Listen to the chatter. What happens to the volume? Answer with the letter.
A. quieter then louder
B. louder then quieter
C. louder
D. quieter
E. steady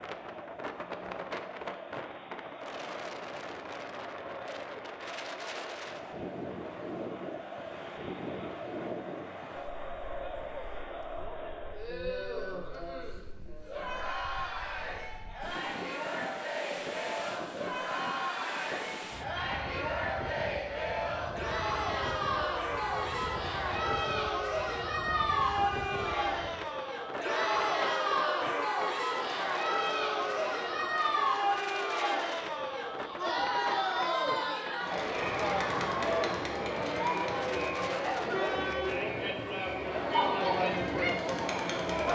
C.